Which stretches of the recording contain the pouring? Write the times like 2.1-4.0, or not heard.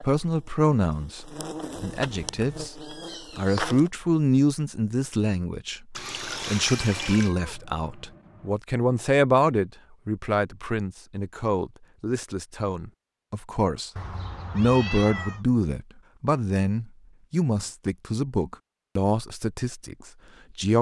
6.0-7.3.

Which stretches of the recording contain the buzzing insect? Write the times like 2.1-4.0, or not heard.
0.0-3.9.